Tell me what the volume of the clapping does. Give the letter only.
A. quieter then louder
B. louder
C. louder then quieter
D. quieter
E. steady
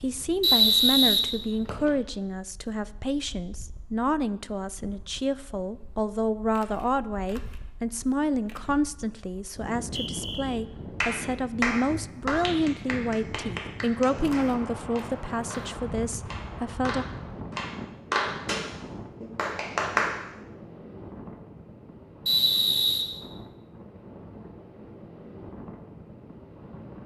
A.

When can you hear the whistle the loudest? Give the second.
1 s.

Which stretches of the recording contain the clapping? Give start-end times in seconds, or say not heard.
11.0-20.1.